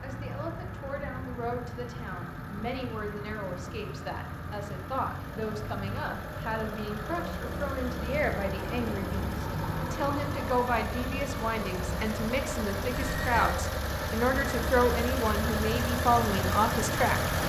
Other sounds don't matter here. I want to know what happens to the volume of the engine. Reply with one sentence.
The loudness of the engine goes up.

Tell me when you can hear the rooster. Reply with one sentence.
The rooster can't be heard in this clip.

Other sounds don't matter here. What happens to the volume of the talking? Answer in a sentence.
The loudness of the talking goes up.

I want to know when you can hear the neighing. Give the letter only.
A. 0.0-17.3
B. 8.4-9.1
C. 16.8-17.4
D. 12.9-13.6
D.